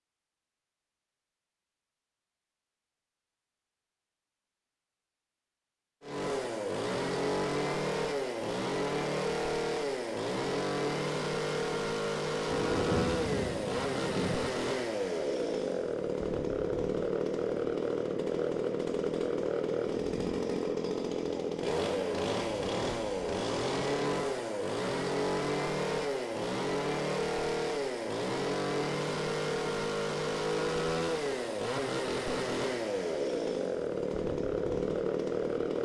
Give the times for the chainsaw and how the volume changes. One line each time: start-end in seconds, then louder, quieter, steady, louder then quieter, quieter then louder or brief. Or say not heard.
6.0-35.8 steady.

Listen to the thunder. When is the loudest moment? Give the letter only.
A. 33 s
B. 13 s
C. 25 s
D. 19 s
B.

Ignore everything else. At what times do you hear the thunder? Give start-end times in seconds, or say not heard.
12.4-14.4.